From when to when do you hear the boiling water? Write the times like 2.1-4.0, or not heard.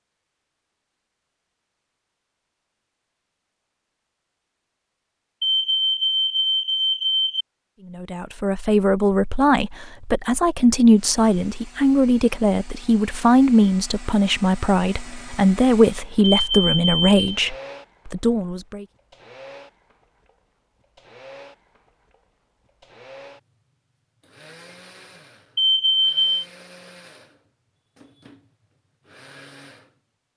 not heard.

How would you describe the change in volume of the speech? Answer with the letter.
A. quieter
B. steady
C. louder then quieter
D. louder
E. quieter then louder
B.